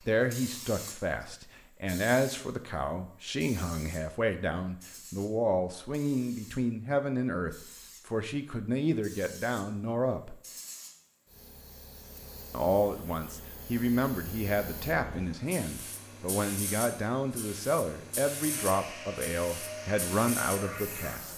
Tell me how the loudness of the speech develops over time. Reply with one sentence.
The loudness of the speech stays about the same.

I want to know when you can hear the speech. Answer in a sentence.
You can hear the speech from 0.1 to 10.3 s and from 12.5 to 21.3 s.